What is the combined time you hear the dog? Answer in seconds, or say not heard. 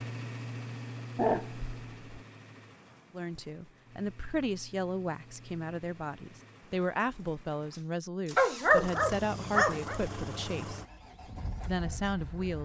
3 s.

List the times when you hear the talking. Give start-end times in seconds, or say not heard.
3.1-10.8, 11.7-12.6.